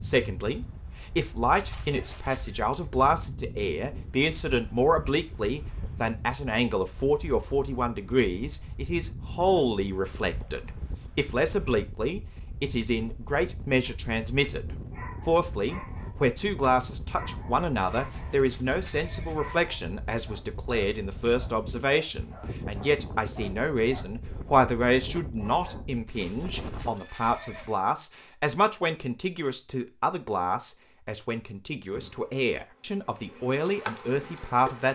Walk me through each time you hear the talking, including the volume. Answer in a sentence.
The talking can be heard from 0.0 to 34.9 s, at a steady volume.